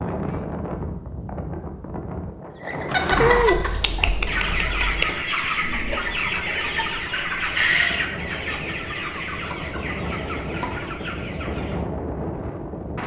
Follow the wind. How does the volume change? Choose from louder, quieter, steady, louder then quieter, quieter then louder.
quieter then louder.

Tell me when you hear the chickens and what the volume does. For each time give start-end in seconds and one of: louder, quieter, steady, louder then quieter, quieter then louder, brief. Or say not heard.
2.6-11.8 quieter.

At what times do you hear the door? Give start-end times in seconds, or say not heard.
2.9-3.5.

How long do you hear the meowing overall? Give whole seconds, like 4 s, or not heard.
2 s.